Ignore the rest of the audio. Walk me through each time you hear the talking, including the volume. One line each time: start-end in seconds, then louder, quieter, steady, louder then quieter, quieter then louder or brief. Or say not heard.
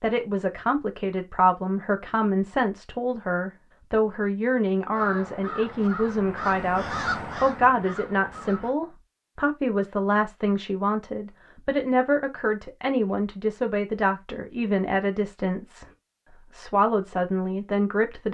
0.0-18.2 steady.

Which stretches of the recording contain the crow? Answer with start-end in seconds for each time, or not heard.
4.9-8.8.